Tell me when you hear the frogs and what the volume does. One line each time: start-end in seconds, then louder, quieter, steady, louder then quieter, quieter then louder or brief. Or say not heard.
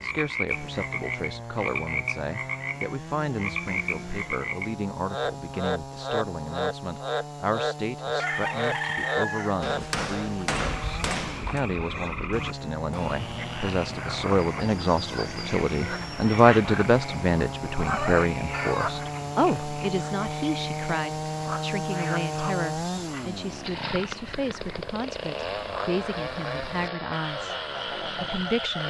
0.0-28.8 quieter.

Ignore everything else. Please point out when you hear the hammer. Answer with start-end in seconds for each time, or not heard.
9.6-11.6.